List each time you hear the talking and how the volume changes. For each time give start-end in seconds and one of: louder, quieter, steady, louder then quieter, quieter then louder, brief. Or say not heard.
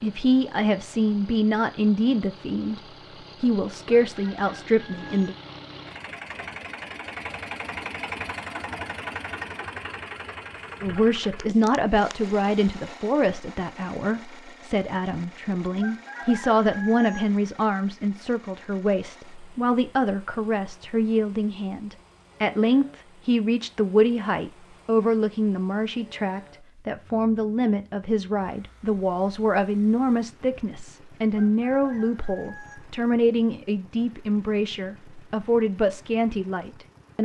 0.0-2.8 brief
3.4-5.3 brief
10.8-37.2 steady.